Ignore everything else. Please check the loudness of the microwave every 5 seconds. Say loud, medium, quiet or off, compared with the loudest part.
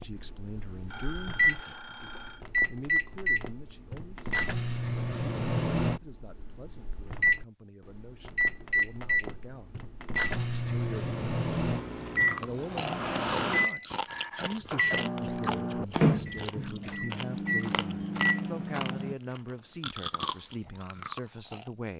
loud, loud, loud, loud, off.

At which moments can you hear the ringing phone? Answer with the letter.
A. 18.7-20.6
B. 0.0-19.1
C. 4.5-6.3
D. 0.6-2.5
D.